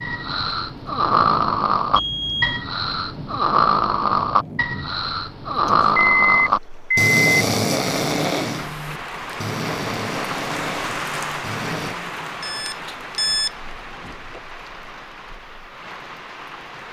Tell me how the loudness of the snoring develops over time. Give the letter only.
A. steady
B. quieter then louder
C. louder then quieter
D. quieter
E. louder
D.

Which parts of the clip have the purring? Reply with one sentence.
The purring can't be heard in this clip.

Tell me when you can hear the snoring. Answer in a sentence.
You can hear the snoring from 0.0 to 11.9 s.